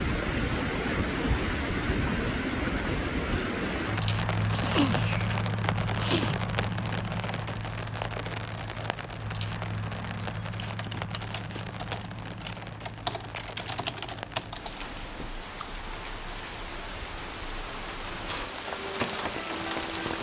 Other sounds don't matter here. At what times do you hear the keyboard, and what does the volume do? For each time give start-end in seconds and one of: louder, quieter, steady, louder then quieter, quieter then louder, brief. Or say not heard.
10.5-15.8 louder then quieter.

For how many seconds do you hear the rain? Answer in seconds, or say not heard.
20 s.